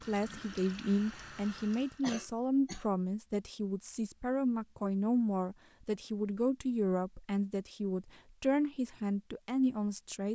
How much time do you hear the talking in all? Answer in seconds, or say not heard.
10 s.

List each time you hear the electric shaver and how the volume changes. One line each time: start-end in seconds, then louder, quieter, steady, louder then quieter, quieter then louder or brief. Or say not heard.
not heard.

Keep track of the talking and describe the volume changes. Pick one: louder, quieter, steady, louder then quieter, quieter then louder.
steady.